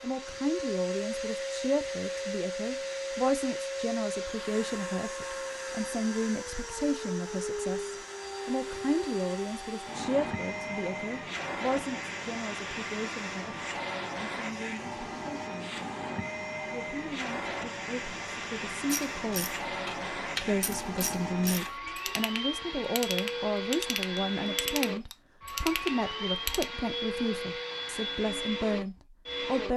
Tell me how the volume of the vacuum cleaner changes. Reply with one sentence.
The loudness of the vacuum cleaner stays about the same.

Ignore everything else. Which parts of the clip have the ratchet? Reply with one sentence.
The ratchet can be heard from 18.9 to 26.7 s.